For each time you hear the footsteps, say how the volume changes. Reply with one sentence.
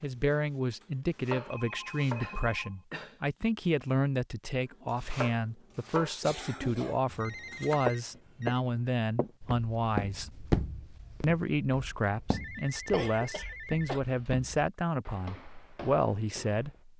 You can hear the footsteps from 7.5 to 16.9 s, getting quieter.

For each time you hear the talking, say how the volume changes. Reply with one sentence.
You can hear the talking from 0.0 to 10.3 s, at a steady volume; and from 11.2 to 16.9 s, at a steady volume.